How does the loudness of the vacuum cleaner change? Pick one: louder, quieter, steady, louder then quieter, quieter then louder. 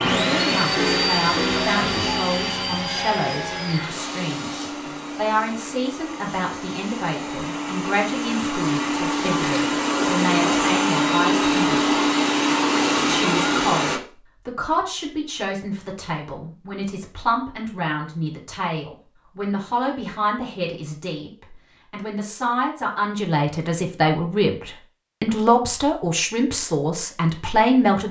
quieter then louder.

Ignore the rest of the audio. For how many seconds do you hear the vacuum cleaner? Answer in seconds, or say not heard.
14 s.